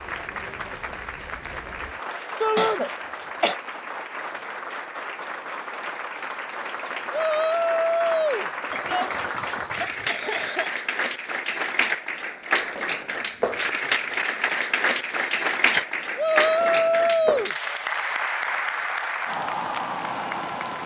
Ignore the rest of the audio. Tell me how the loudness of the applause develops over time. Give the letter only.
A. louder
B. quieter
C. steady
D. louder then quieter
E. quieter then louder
A.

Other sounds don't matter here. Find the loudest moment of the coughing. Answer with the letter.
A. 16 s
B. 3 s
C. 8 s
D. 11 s
B.